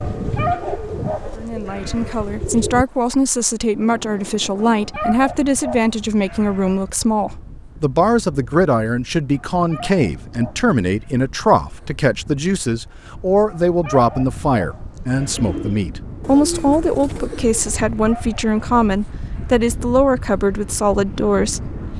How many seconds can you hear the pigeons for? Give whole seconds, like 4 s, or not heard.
6 s.